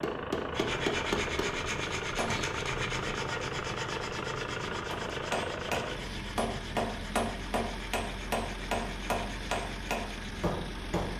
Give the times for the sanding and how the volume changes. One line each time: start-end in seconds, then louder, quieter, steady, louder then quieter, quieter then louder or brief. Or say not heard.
0.5-10.5 quieter.